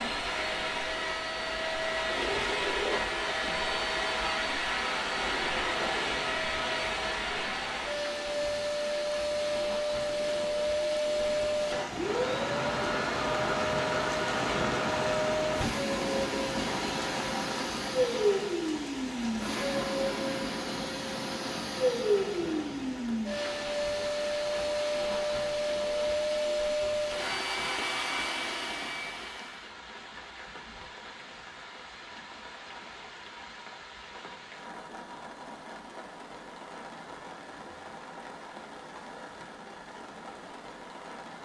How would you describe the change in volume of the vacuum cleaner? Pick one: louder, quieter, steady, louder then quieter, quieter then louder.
steady.